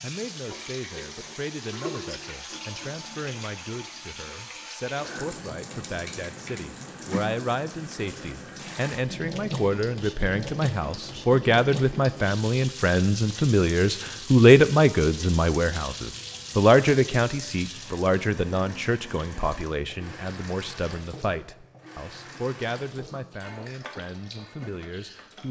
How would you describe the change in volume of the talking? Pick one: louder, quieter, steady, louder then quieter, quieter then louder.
louder then quieter.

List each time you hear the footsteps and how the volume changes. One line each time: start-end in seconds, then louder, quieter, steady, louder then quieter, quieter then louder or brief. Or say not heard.
not heard.